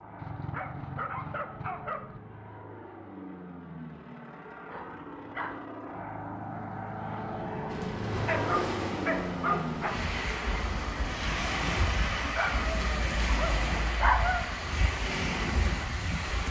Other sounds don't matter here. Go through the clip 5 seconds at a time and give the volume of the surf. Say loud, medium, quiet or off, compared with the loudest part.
off, medium, loud, loud.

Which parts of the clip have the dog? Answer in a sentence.
The dog can be heard from 0.1 to 2.2 s, from 4.7 to 5.7 s, from 8.2 to 10.1 s and from 12.3 to 14.4 s.